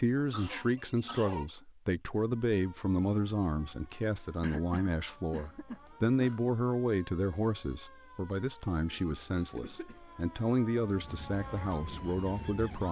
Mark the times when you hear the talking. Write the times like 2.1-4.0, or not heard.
0.0-12.8.